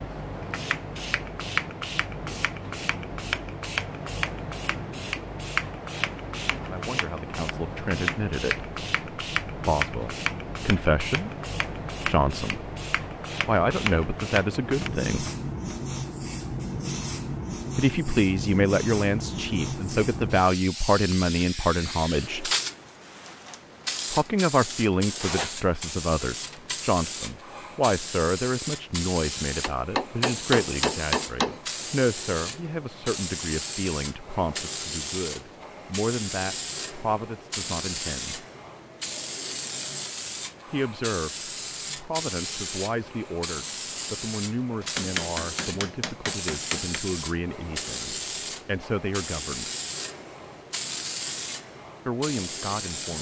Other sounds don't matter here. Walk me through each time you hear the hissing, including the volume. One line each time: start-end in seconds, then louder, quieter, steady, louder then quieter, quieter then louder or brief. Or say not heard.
0.0-53.1 steady.